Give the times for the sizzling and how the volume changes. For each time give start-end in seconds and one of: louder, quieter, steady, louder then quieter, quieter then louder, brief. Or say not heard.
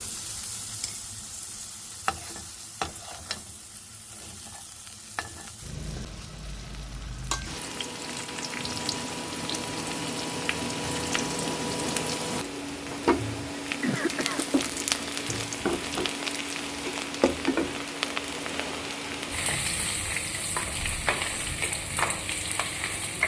0.0-23.2 louder.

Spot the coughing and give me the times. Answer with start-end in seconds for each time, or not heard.
13.6-14.4.